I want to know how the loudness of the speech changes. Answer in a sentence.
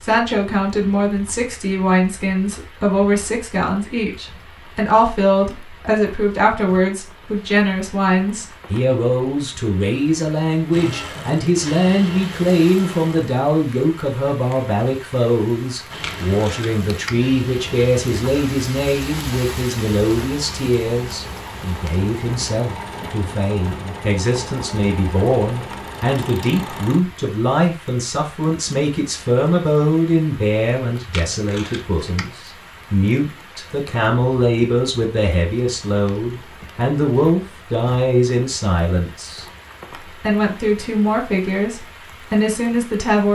The loudness of the speech stays about the same.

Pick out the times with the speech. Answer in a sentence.
You can hear the speech from 0.0 to 39.5 s and from 40.0 to 43.3 s.